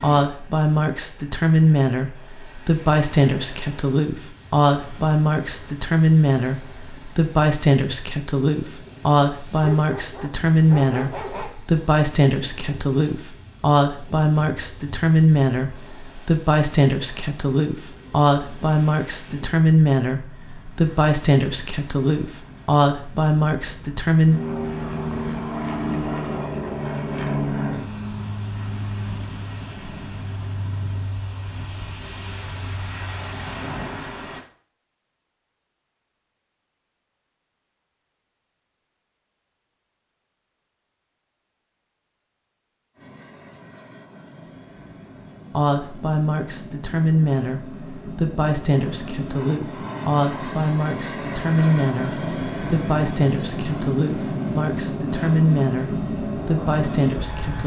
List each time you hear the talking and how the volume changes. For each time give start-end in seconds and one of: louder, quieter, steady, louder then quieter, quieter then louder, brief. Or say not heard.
0.0-24.4 steady
45.5-57.6 steady.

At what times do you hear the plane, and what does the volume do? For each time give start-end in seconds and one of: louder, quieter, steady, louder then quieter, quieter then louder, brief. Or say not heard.
24.2-34.0 quieter
43.0-57.6 louder.